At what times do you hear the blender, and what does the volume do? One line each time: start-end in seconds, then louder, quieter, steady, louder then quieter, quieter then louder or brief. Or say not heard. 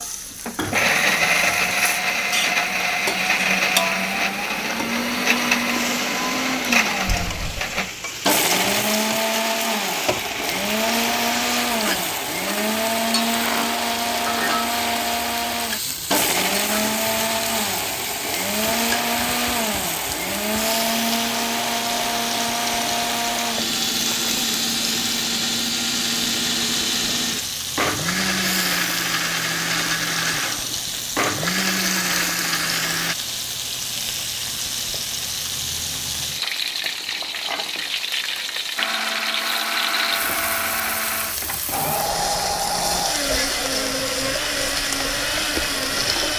0.0-33.1 steady
38.8-46.3 steady.